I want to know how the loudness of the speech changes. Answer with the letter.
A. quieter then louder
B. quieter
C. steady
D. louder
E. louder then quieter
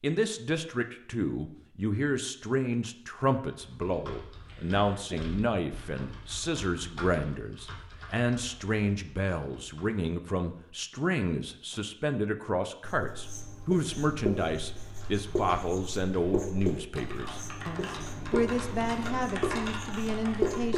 C.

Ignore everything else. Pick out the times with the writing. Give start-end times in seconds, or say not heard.
12.8-20.7.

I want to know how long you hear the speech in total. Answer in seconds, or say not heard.
21 s.